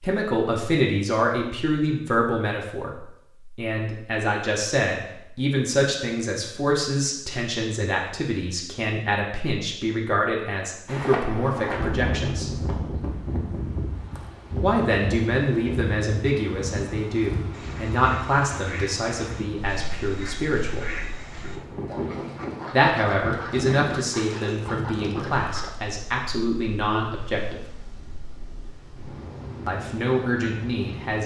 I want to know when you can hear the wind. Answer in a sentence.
The wind can be heard from 10.8 to 31.2 s.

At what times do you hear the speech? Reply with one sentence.
You can hear the speech from 0.0 to 12.5 s, from 14.6 to 20.9 s, from 22.7 to 27.6 s and from 29.6 to 31.2 s.